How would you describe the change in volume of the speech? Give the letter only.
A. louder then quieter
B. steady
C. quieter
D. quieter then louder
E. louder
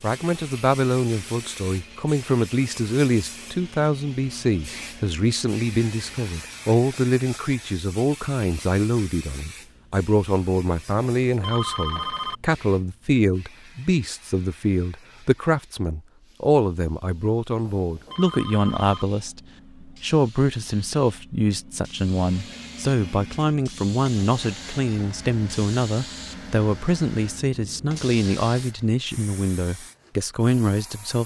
B.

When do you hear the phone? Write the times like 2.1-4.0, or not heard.
11.2-12.3, 17.6-19.1.